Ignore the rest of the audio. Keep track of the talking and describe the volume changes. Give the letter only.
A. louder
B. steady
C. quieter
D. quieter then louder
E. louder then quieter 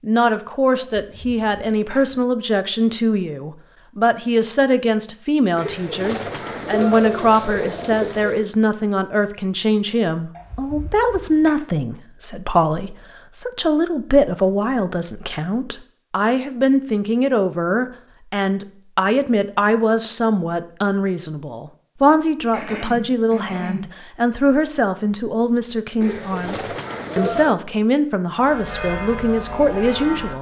B.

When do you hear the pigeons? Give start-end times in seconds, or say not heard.
5.5-8.5, 26.0-27.6.